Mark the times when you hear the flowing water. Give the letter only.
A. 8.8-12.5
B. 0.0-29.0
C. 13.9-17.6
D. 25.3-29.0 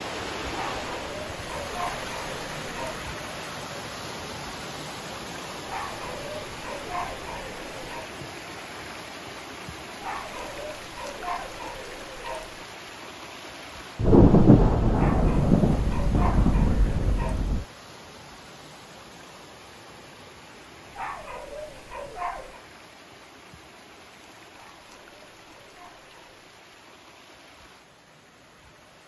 B.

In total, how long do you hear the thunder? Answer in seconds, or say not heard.
4 s.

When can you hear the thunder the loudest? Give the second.
14 s.